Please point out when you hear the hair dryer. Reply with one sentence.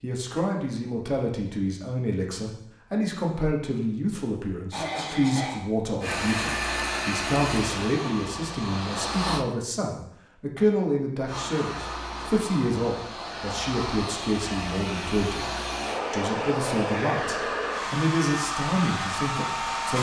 You can hear the hair dryer from 6.0 to 9.4 s and from 11.2 to 19.9 s.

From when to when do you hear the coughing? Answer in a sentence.
The coughing can be heard from 4.7 to 5.7 s.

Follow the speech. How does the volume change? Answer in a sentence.
The loudness of the speech stays about the same.